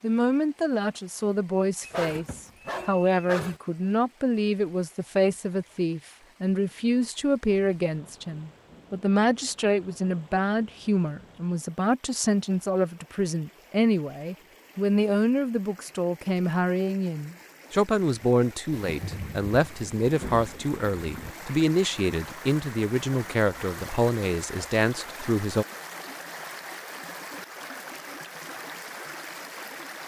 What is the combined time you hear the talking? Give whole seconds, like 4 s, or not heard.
26 s.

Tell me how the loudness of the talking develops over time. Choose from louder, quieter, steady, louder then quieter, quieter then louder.
steady.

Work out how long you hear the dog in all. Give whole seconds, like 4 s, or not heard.
2 s.